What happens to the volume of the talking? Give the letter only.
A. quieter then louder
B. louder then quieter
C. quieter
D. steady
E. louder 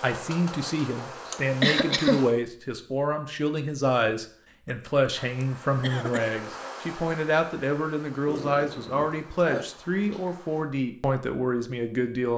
D.